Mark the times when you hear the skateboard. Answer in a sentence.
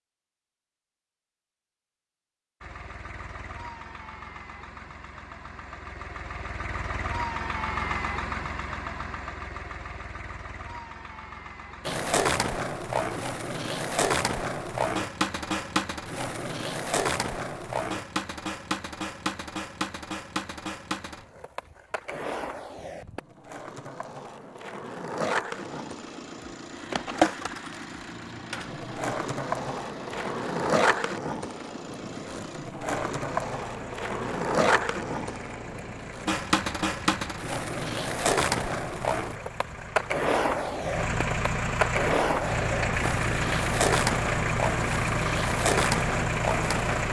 You can hear the skateboard from 11.8 to 47.0 s.